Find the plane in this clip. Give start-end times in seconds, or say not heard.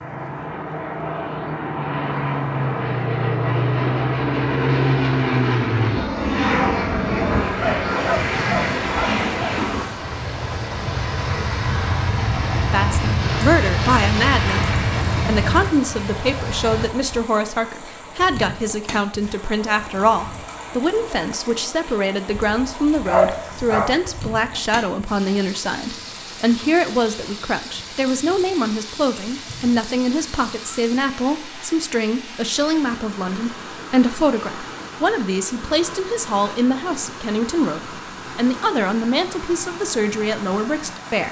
0.0-16.9.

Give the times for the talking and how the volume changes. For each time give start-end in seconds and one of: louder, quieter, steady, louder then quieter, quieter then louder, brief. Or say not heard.
12.7-41.2 steady.